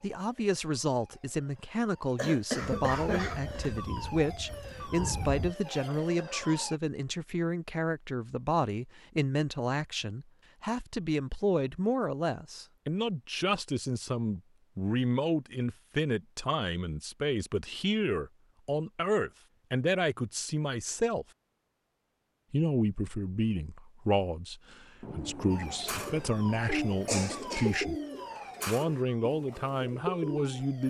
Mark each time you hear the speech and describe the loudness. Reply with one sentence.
You can hear the speech from 0.0 to 21.2 s, at a steady volume; from 22.5 to 27.9 s, at a steady volume; and briefly from 28.6 to 30.8 s.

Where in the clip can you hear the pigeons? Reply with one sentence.
You can hear the pigeons from 25.1 to 30.6 s.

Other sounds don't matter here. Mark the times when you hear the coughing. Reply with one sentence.
The coughing can be heard from 2.1 to 3.8 s and from 27.1 to 27.9 s.